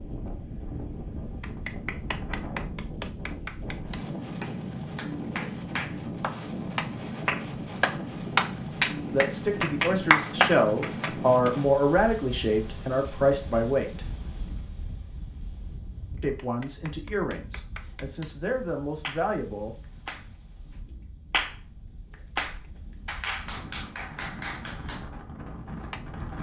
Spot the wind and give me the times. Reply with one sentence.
The wind can be heard from 0.0 to 26.3 s.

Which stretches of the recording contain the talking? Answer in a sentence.
The talking can be heard from 9.1 to 14.0 s and from 16.2 to 19.8 s.